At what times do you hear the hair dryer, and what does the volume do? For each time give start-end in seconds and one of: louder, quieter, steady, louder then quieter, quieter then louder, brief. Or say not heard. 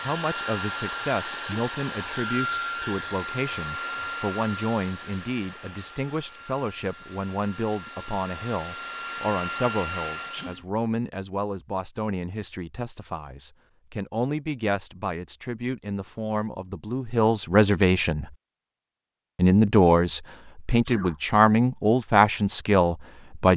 0.0-10.6 quieter then louder.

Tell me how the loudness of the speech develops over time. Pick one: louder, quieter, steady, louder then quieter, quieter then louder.
louder.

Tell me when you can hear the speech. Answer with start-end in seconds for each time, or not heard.
0.0-18.3, 19.4-23.5.